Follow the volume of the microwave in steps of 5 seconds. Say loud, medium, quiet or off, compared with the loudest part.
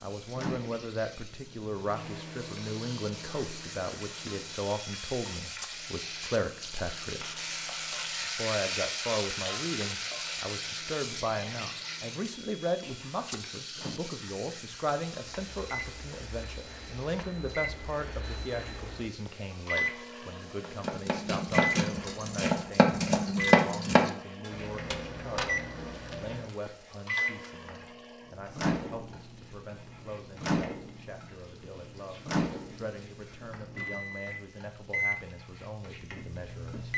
medium, quiet, quiet, loud, loud, loud, loud, loud.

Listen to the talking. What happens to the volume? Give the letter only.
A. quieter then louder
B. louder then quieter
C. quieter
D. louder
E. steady
C.